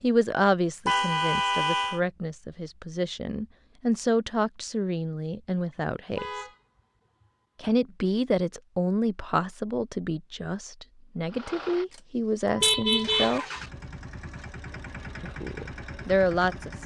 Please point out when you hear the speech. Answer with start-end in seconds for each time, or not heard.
0.0-6.5, 7.6-13.4, 15.2-16.8.